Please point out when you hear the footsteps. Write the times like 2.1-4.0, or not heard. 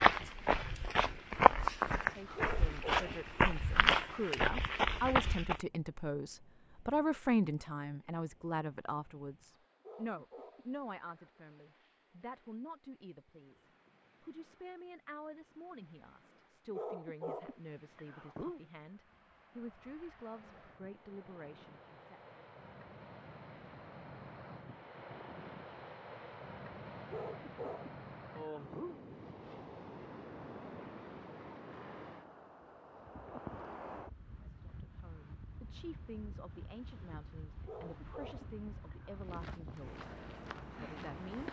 0.0-5.7, 39.1-41.4.